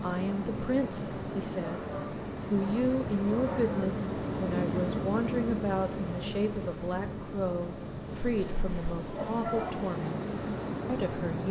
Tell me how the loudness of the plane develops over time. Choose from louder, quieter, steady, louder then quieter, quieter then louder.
louder then quieter.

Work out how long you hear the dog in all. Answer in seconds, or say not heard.
4 s.